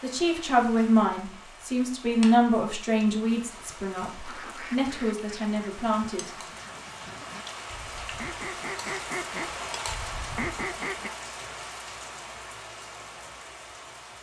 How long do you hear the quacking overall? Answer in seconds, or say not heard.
7 s.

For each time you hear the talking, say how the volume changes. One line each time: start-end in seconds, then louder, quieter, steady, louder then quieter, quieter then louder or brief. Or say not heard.
0.0-6.3 quieter.